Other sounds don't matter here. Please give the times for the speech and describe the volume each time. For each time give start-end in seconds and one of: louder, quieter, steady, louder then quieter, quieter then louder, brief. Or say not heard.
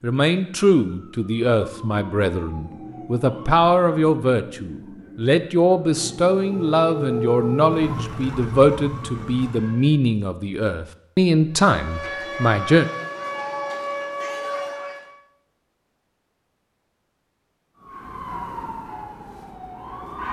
0.0-12.8 steady.